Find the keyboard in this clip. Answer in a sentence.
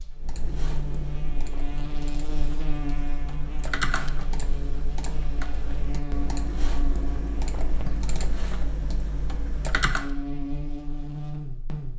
You can hear the keyboard from 0.1 to 10.2 s.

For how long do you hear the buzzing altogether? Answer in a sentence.
You can hear the buzzing for 12 seconds altogether.